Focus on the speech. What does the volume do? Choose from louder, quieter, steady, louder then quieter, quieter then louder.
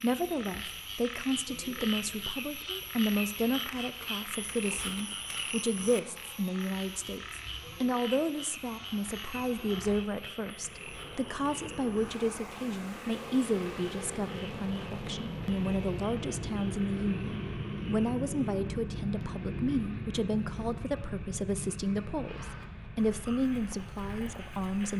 steady.